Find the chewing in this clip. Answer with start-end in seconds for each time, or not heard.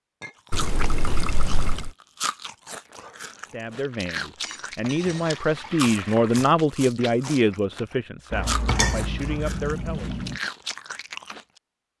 0.5-11.6.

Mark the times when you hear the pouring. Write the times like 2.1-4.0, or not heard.
0.5-1.9, 4.8-6.5, 8.3-10.2.